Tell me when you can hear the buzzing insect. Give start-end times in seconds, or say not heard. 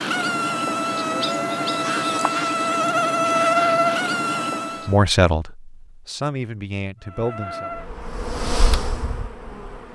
0.0-5.0, 7.0-9.9.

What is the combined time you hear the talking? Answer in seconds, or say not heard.
3 s.